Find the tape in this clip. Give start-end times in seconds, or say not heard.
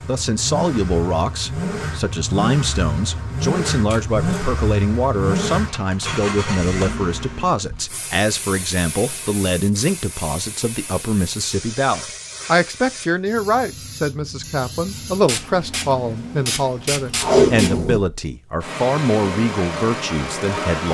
3.9-4.5, 17.1-18.0.